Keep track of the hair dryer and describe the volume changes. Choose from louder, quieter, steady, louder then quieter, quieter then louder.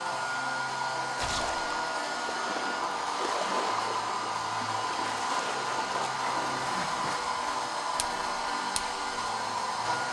steady.